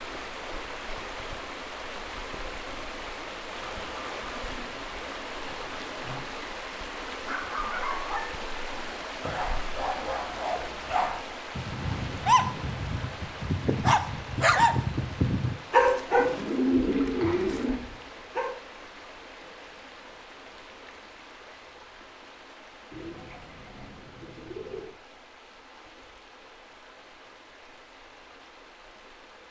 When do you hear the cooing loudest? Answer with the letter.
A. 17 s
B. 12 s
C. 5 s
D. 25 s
A.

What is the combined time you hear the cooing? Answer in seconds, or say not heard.
6 s.